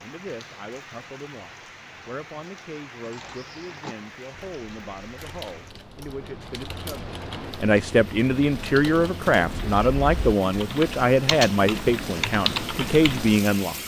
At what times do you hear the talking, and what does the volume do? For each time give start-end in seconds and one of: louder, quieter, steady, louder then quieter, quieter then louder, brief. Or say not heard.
0.0-13.8 louder.